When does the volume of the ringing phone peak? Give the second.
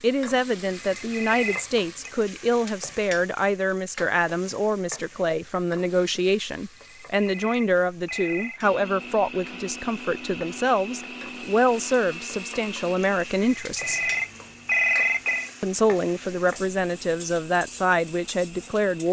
15 s.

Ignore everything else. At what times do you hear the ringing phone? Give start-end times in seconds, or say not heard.
0.7-2.1, 6.8-8.7, 13.3-15.5.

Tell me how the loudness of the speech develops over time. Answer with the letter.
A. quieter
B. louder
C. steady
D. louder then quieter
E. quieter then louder
C.